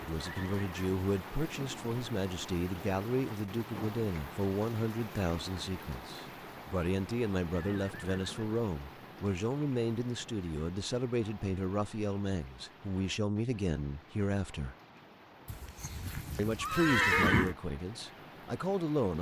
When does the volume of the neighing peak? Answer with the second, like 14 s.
17 s.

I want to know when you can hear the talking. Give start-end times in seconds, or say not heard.
0.0-14.8, 16.4-19.1.